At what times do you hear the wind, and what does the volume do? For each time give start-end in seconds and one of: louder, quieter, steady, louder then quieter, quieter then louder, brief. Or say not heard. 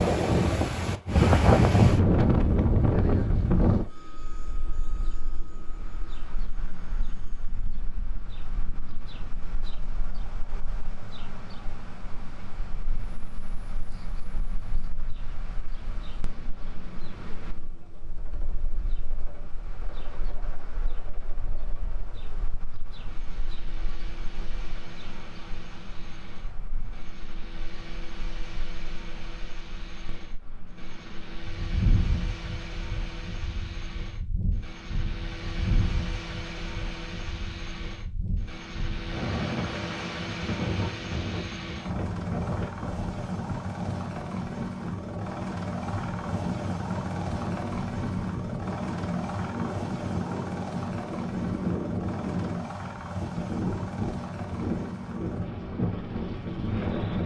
0.0-57.2 quieter then louder.